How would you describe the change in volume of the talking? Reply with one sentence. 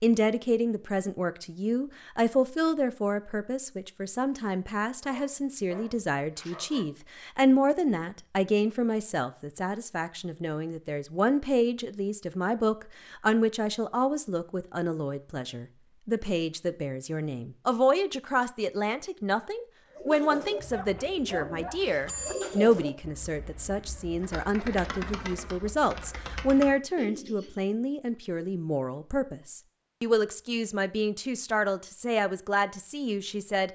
The loudness of the talking stays about the same.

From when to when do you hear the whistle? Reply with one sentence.
The whistle can't be heard in this clip.